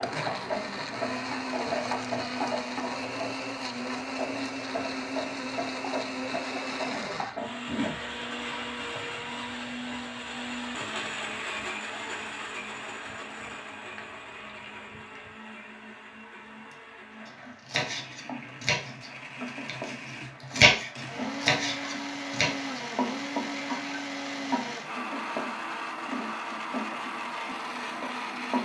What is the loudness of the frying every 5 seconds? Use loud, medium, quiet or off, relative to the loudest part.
loud, loud, quiet, medium, loud, loud.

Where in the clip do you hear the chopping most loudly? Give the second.
21 s.